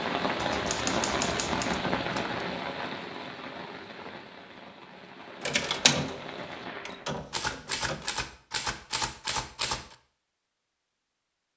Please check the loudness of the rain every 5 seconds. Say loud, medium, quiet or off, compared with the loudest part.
loud, medium, off.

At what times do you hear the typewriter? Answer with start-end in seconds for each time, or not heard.
0.3-2.4, 7.3-9.9.